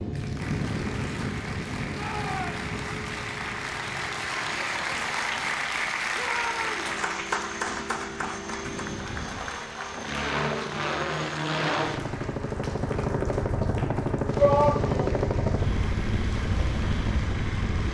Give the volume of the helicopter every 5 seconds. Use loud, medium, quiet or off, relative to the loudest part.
medium, medium, loud, loud.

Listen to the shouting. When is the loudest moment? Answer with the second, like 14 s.
15 s.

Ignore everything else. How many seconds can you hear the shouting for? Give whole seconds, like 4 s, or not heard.
2 s.